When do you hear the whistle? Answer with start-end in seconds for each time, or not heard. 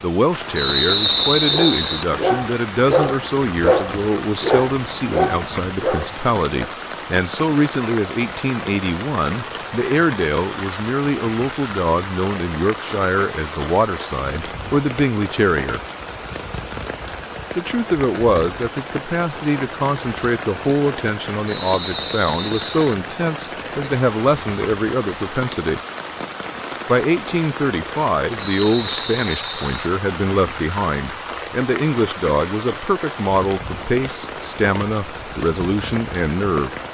0.6-2.0, 21.4-22.9, 28.4-29.8.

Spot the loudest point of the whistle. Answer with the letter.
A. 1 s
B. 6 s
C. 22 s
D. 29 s
A.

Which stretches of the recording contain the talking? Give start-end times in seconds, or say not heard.
0.0-15.8, 17.6-25.8, 26.9-36.8.